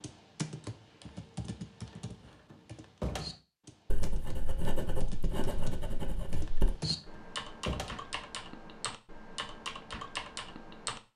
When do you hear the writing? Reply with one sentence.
You can hear the writing from 3.9 to 6.7 s.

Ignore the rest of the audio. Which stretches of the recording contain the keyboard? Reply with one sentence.
You can hear the keyboard from 0.0 to 11.0 s.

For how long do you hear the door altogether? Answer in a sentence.
The door can be heard for 3 seconds in total.